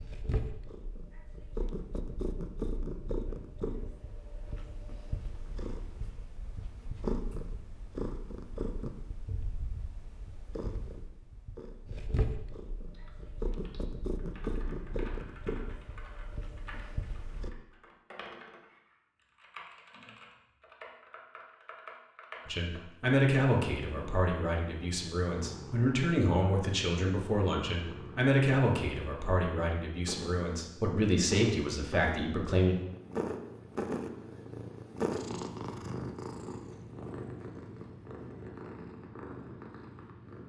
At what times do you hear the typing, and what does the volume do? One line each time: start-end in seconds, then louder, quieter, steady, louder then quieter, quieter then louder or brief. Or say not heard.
12.8-22.9 louder.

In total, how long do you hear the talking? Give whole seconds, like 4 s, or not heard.
10 s.